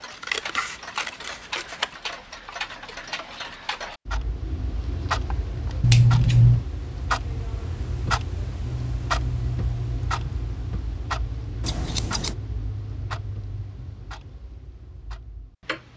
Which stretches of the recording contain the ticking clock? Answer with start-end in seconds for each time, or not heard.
0.0-15.9.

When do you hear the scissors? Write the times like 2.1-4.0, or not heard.
0.1-1.9, 5.8-6.7, 11.6-12.3.